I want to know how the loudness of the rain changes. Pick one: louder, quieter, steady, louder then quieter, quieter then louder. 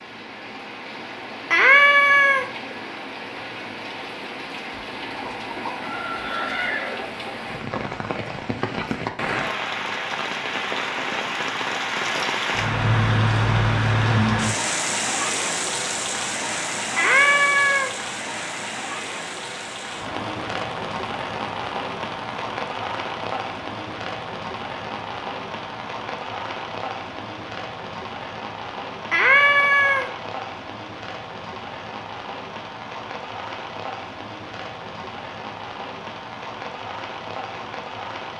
louder then quieter.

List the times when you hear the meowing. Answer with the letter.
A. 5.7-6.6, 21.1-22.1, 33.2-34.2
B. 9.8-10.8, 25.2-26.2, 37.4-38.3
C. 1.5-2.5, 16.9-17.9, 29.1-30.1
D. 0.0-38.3
C.